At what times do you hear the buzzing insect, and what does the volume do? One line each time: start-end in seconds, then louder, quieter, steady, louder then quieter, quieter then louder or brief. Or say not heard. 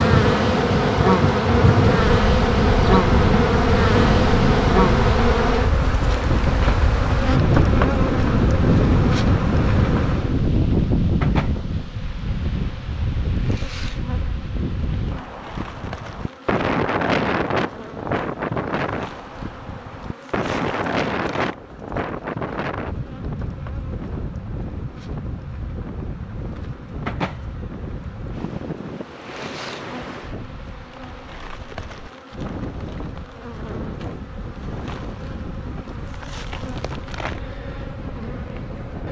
0.0-39.0 quieter.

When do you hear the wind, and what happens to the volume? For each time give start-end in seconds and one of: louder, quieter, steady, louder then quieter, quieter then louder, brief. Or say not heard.
0.0-39.0 quieter.